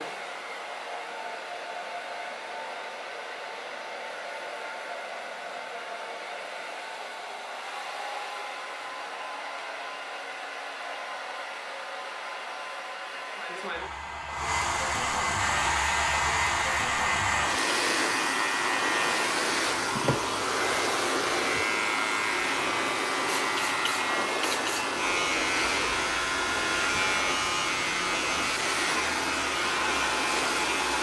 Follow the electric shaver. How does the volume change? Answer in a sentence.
The loudness of the electric shaver stays about the same.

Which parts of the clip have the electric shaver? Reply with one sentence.
The electric shaver can be heard from 15.3 to 30.9 s.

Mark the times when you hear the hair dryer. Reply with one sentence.
You can hear the hair dryer from 0.0 to 30.9 s.